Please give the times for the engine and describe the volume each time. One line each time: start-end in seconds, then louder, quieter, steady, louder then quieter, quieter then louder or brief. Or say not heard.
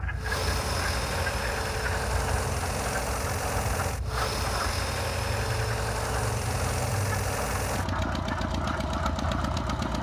0.0-9.9 steady.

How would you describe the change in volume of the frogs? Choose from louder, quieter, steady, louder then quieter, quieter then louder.
steady.